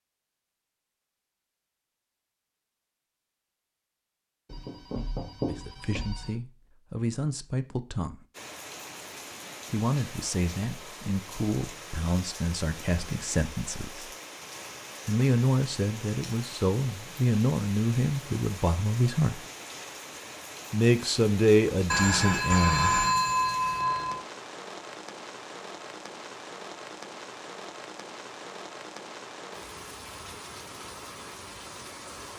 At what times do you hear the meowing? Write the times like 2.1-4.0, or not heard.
not heard.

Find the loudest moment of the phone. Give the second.
23 s.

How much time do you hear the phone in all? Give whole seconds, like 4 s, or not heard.
4 s.